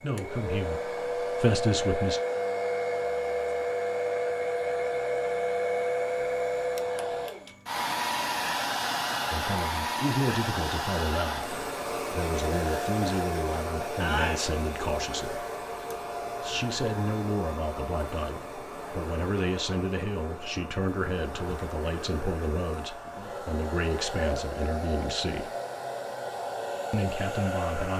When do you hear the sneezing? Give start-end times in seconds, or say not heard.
13.8-14.5.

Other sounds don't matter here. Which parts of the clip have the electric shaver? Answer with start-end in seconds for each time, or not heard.
not heard.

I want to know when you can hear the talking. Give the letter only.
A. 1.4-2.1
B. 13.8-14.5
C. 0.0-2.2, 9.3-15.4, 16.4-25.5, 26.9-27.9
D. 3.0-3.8
C.